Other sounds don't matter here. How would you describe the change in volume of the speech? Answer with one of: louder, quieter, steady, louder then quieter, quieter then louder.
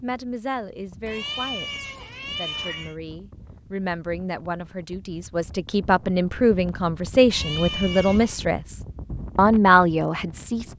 louder.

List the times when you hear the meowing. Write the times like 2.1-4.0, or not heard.
1.1-3.0, 7.2-8.4.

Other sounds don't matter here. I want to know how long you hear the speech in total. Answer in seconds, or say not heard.
11 s.